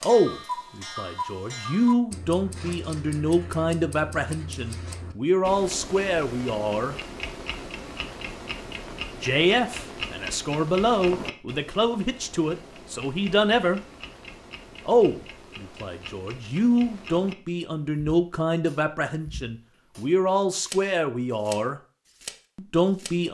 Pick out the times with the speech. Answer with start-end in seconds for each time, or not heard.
0.0-7.0, 9.2-13.8, 14.8-21.8, 22.6-23.2.